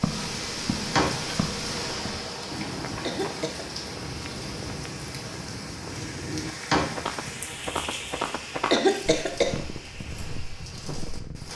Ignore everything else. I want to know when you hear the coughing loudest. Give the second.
9 s.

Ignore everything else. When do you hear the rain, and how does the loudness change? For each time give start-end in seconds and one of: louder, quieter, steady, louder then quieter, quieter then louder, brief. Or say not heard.
0.0-11.5 quieter.